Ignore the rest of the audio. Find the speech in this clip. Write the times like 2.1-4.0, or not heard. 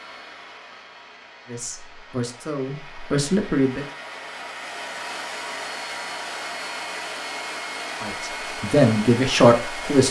1.5-3.9, 8.0-10.0.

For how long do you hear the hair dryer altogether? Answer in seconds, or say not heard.
10 s.